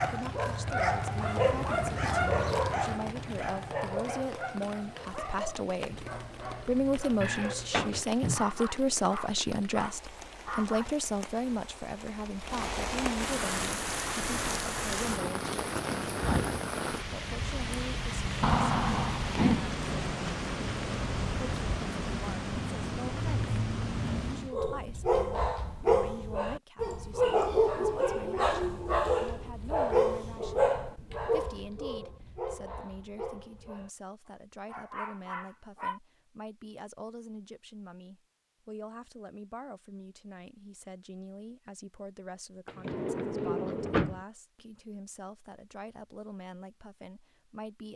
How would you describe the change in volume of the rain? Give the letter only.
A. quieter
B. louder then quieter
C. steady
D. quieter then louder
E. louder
E.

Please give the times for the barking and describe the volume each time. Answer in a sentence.
You can hear the barking from 0.0 to 10.9 s, getting quieter; and from 24.5 to 36.0 s, getting quieter.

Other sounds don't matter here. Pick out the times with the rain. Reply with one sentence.
The rain can be heard from 0.0 to 24.6 s.